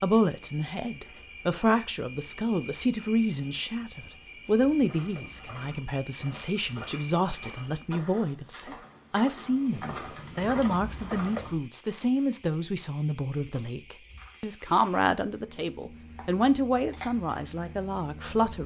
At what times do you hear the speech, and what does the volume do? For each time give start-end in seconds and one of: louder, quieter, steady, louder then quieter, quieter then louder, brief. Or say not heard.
0.0-18.6 steady.